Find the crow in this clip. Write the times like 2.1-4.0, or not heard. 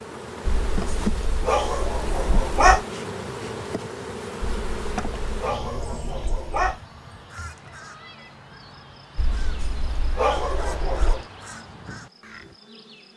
6.5-12.6.